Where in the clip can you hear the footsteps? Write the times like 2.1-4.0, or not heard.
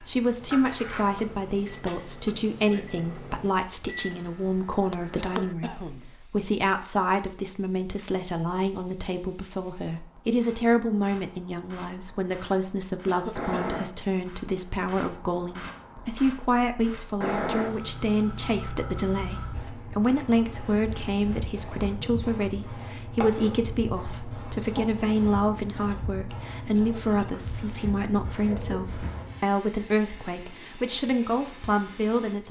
not heard.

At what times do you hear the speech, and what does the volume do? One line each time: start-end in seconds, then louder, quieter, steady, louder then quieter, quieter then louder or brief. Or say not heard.
0.0-32.4 steady.